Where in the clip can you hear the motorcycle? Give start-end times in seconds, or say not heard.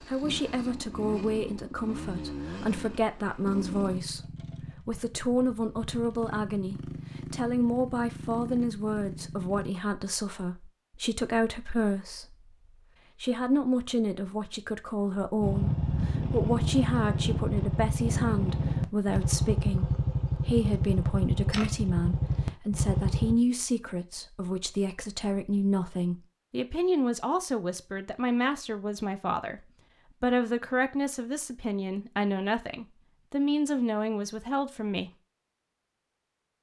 0.0-9.7, 15.4-23.4.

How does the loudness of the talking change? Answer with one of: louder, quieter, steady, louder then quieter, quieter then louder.
steady.